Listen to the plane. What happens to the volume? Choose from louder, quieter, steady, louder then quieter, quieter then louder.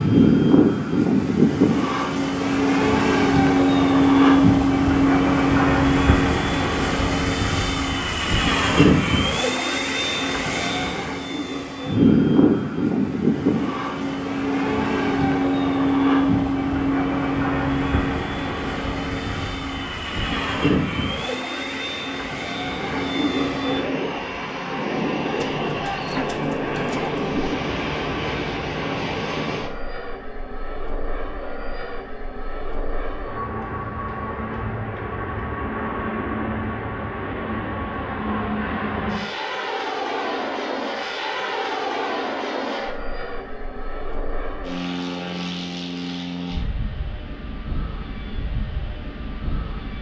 quieter.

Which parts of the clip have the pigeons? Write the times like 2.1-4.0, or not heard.
25.4-27.6.